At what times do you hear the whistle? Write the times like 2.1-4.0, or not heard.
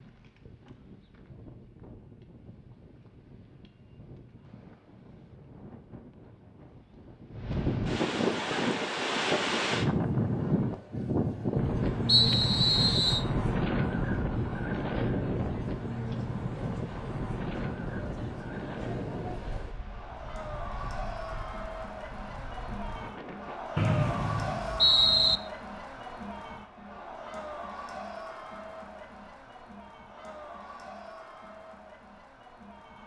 12.1-13.2, 23.8-25.4.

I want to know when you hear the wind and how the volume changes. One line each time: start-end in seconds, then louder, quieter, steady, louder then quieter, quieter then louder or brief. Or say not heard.
0.0-23.6 louder then quieter.